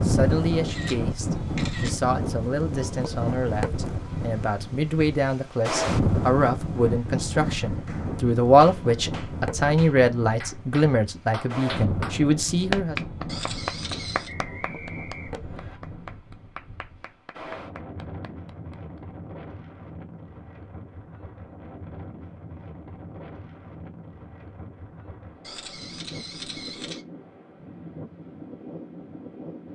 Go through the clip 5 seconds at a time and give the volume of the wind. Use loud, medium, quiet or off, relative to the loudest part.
loud, loud, medium, quiet, quiet, quiet.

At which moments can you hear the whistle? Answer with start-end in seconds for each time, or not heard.
14.2-15.8.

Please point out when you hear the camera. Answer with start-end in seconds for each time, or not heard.
0.7-1.9, 13.2-14.3, 25.4-27.1.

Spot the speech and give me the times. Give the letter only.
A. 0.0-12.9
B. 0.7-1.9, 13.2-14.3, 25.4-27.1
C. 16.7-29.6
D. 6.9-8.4
A.